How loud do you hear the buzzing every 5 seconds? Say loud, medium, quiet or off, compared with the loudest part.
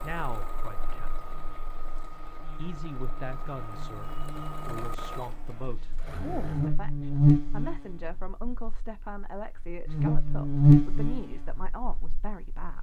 quiet, medium, loud.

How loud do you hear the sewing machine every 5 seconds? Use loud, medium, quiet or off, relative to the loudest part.
loud, loud, off.